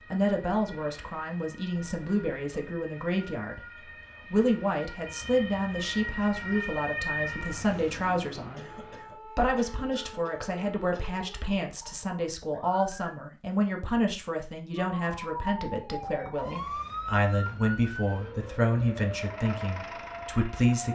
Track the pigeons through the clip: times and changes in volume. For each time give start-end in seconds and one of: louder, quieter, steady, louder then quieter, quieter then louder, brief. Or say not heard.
not heard.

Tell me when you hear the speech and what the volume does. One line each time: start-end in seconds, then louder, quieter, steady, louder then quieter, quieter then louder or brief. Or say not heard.
0.0-20.8 steady.